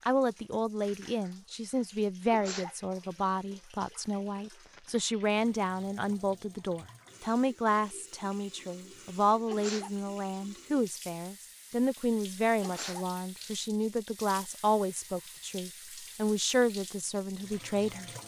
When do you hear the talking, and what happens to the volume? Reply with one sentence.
The talking can be heard from 0.1 to 18.1 s, at a steady volume.